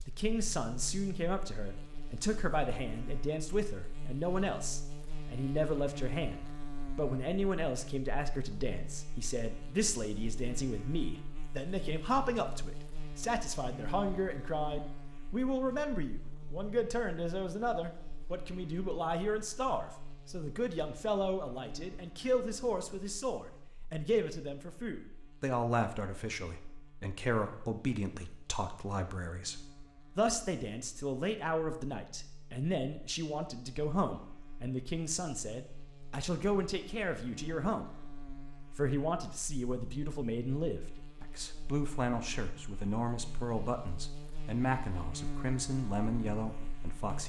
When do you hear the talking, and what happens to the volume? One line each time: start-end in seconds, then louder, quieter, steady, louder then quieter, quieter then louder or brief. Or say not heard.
0.1-47.2 steady.